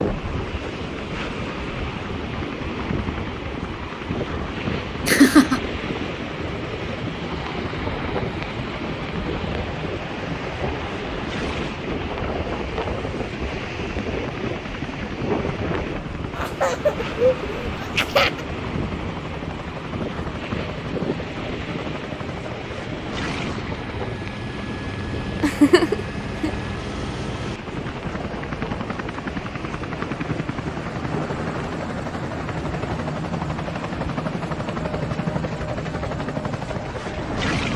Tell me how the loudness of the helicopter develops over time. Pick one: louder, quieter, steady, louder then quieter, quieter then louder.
louder.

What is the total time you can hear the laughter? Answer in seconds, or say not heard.
4 s.